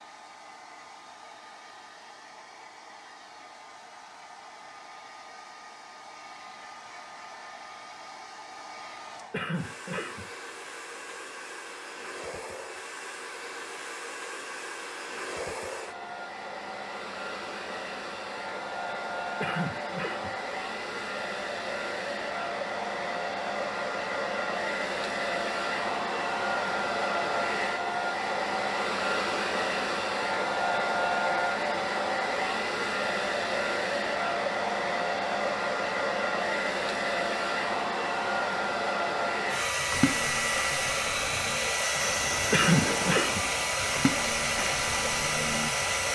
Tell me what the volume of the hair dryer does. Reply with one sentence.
The loudness of the hair dryer goes up.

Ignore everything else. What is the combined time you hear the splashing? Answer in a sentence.
You can hear the splashing for 6 seconds altogether.